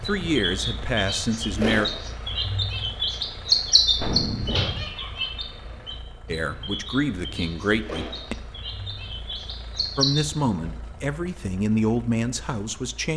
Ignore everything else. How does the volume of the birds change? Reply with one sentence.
The loudness of the birds goes up, then down.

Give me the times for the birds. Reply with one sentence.
The birds can be heard from 0.0 to 10.3 s.